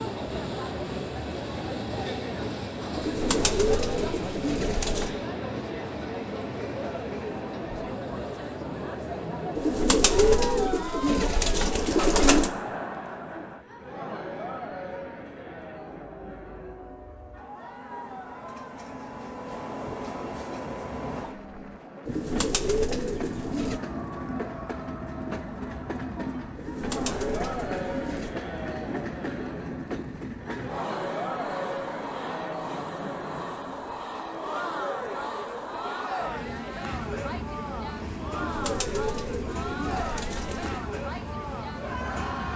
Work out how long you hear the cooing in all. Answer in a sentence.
You can hear the cooing for 11 seconds altogether.